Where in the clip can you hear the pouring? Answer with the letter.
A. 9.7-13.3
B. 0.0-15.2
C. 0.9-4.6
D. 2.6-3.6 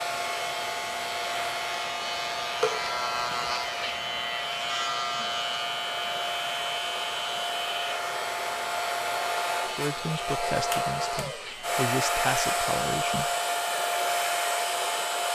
D.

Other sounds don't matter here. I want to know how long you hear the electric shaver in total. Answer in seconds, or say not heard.
15 s.